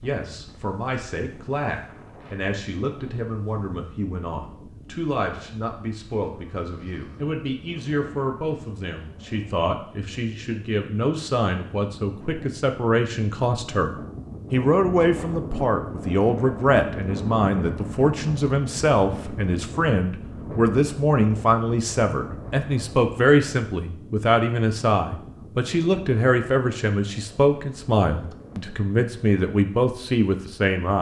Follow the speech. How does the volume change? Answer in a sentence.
The loudness of the speech goes up.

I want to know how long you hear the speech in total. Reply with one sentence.
The speech can be heard for 31 seconds in total.